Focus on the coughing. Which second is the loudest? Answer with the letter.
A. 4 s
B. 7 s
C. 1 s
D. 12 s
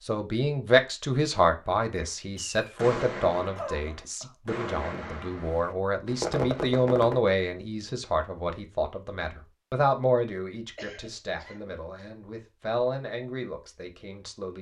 A.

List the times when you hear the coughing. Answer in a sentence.
The coughing can be heard from 3.5 to 4.3 s and from 10.8 to 11.8 s.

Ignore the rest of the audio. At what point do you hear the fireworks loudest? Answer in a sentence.
The loudest moment of the fireworks is at 6 seconds.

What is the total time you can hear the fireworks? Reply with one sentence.
You can hear the fireworks for 5 seconds altogether.